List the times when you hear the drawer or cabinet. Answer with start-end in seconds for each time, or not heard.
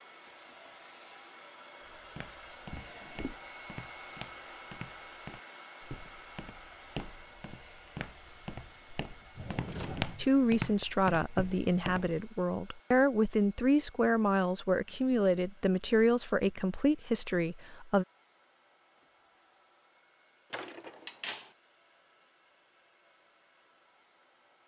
2.7-3.4, 9.3-10.3, 20.5-21.5.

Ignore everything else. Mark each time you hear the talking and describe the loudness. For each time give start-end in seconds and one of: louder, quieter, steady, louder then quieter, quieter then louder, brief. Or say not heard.
10.2-18.1 steady.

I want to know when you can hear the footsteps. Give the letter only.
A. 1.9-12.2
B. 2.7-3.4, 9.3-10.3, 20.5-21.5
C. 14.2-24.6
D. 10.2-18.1
A.